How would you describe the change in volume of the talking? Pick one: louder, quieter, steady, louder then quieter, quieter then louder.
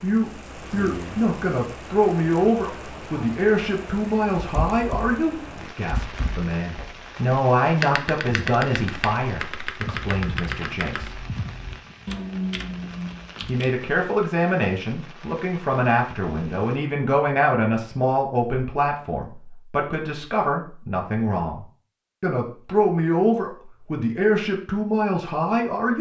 steady.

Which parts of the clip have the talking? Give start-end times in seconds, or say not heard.
0.0-11.2, 13.4-25.9.